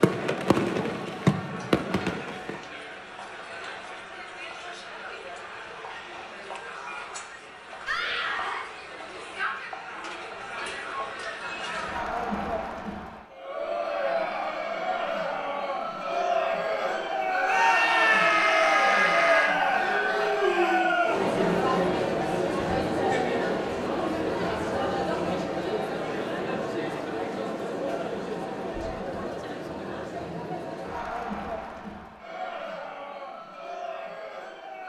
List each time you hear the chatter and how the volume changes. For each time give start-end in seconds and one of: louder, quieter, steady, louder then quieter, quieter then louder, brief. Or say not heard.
0.1-34.8 louder then quieter.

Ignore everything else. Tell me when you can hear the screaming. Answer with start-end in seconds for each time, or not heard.
7.8-8.7, 17.4-19.6.